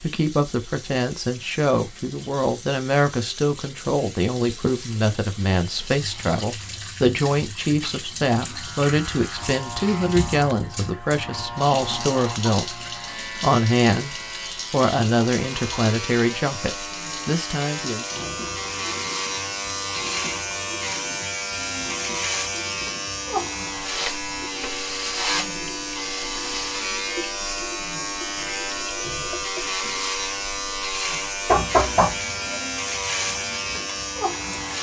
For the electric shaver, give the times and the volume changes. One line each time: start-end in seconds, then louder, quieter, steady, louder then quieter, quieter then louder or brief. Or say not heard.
8.4-34.7 louder.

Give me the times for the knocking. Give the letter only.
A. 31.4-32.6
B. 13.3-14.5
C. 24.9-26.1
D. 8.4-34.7
A.